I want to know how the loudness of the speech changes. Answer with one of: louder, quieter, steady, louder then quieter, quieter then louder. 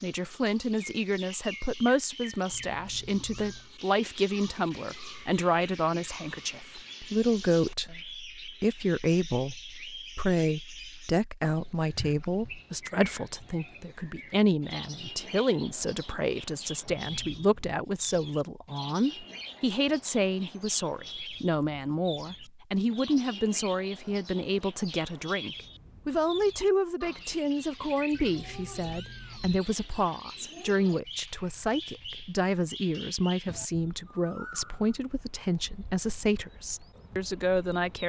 steady.